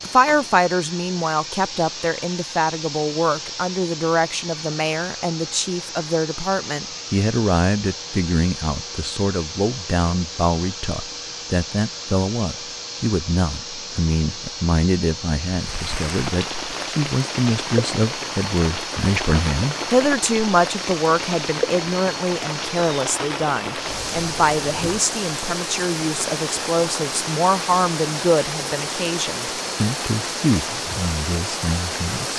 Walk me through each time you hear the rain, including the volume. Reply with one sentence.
You can hear the rain from 15.4 to 32.3 s, at a steady volume.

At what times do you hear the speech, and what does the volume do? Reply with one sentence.
You can hear the speech from 0.0 to 32.3 s, at a steady volume.